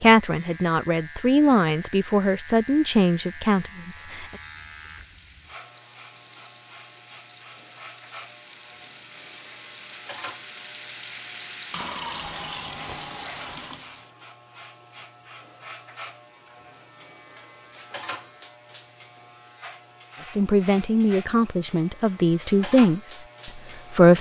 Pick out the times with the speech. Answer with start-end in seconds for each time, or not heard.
0.0-4.2, 20.2-24.1.